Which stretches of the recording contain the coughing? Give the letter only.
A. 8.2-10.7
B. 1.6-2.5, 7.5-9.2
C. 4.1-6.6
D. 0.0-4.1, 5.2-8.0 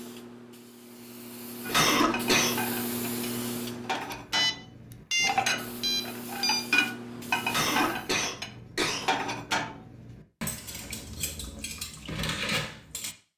B.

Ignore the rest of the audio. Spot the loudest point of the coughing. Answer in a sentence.
The loudest moment of the coughing is at 2 seconds.